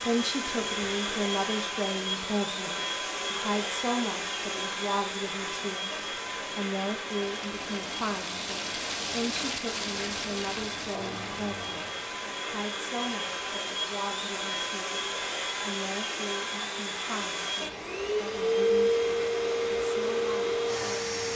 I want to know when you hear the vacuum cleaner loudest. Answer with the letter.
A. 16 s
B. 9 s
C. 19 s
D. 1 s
C.